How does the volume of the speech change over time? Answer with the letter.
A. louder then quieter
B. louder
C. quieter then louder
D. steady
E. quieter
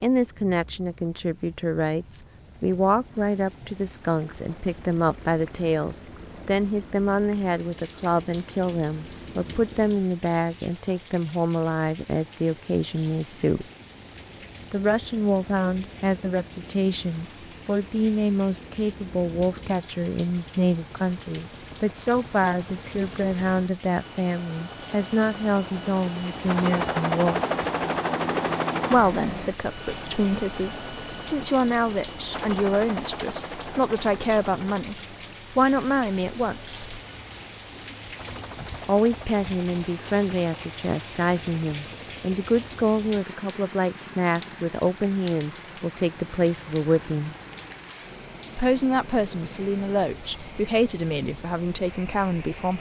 D.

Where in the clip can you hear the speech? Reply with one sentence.
You can hear the speech from 0.0 to 13.7 s, from 14.7 to 27.4 s, from 28.9 to 37.0 s, from 38.9 to 47.4 s and from 48.5 to 52.7 s.